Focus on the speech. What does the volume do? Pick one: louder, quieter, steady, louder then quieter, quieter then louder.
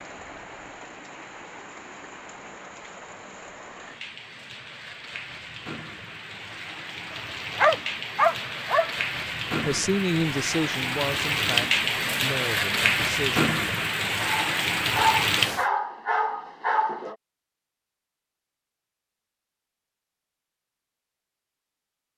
quieter.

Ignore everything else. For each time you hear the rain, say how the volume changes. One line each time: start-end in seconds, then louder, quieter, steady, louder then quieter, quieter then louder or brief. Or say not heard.
0.0-15.7 louder.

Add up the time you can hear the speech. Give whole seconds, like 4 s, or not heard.
4 s.